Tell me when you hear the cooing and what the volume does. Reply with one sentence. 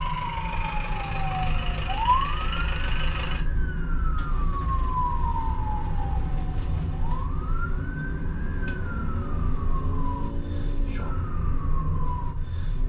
The cooing can't be heard in this clip.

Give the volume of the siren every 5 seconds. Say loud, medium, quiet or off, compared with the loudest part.
loud, loud, medium.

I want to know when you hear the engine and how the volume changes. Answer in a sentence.
You can hear the engine from 0.0 to 12.8 s, getting quieter then louder.